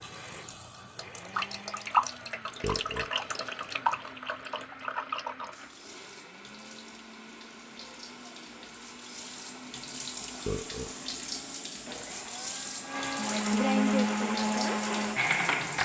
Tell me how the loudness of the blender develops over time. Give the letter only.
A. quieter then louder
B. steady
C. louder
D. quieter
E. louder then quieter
C.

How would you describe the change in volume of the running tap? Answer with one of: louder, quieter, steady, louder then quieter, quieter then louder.
quieter then louder.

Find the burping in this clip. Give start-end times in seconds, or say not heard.
2.6-3.1, 10.4-10.9.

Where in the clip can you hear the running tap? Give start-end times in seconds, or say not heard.
0.0-15.8.